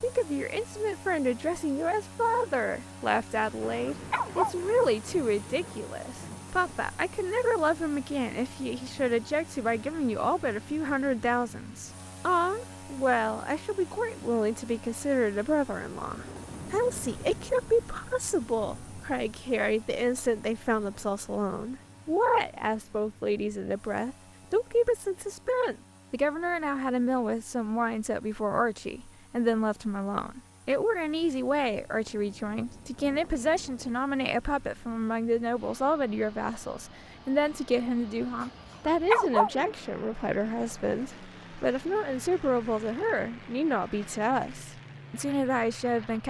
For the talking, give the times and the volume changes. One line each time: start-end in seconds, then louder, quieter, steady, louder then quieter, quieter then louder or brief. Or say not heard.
0.0-46.2 steady.